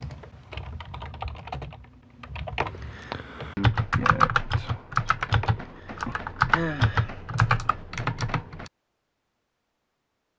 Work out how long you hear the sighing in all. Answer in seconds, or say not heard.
2 s.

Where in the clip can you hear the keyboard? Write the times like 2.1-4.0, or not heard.
0.0-8.7.